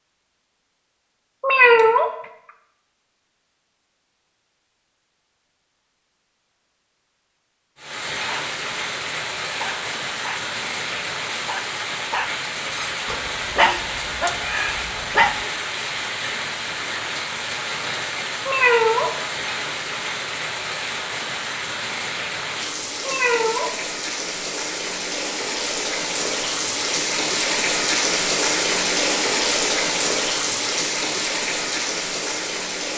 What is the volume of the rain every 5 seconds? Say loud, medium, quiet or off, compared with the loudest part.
off, medium, medium, medium, medium, loud, loud.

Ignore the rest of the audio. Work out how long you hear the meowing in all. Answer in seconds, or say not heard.
2 s.